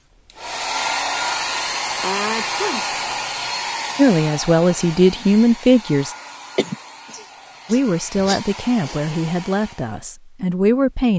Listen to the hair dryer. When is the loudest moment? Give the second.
1 s.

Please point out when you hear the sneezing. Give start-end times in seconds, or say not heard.
1.9-2.9, 6.5-8.9.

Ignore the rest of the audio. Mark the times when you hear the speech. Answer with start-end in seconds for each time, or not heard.
4.0-6.2, 7.7-11.1.